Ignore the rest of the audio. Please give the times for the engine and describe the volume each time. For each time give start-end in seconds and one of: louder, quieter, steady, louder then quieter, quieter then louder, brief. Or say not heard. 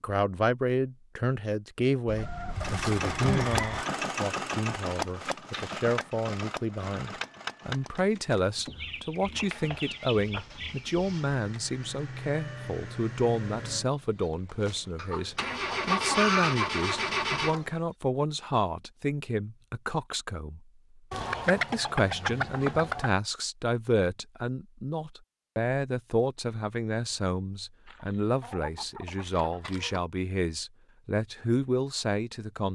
2.5-17.6 quieter then louder.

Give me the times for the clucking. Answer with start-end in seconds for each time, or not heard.
2.0-3.9, 8.7-11.1, 14.9-17.8, 21.1-23.1, 27.9-30.0.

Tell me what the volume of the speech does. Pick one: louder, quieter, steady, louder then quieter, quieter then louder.
steady.